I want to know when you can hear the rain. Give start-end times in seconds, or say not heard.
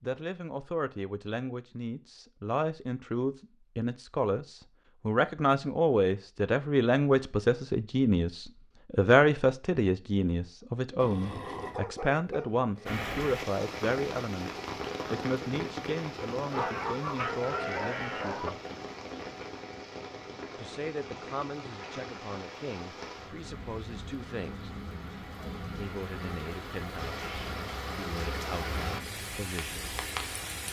12.8-30.6.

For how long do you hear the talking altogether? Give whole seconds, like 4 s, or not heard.
27 s.